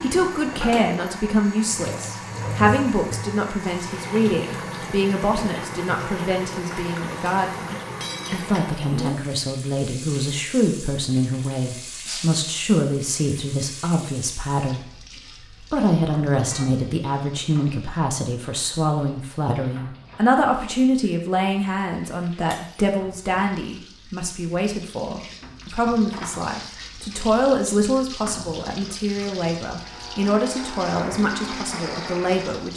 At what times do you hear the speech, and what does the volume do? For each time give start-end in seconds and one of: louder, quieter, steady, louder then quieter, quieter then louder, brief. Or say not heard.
0.0-32.7 steady.